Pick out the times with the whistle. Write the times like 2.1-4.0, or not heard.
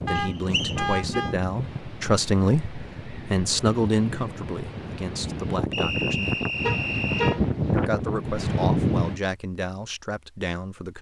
0.1-0.8, 5.7-7.3.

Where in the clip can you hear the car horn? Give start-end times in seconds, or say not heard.
0.1-1.4, 6.6-7.8.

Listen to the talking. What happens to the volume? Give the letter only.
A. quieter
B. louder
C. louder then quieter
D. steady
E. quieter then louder
C.